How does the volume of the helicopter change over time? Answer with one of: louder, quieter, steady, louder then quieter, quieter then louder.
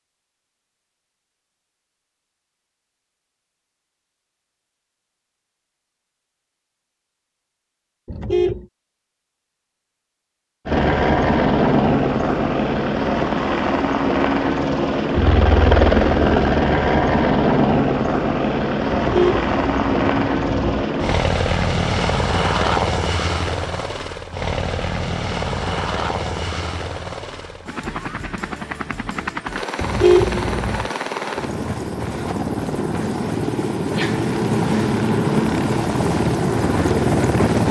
quieter then louder.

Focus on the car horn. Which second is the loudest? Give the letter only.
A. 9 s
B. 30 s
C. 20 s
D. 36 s
B.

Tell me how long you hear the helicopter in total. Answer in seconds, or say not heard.
27 s.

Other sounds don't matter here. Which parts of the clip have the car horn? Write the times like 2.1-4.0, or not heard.
8.1-8.7, 19.1-20.9, 29.8-30.9.